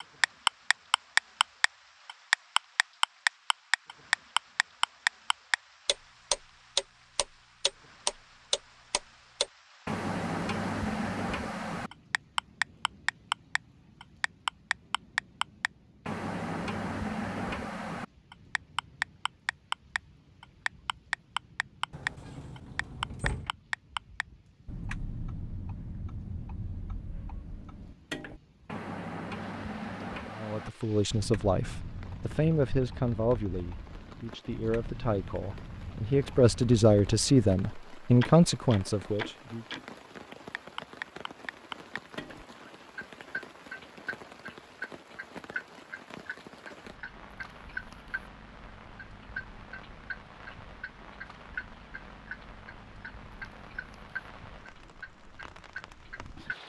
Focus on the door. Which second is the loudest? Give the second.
23 s.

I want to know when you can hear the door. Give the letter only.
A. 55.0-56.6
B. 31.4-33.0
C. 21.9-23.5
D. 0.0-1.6
C.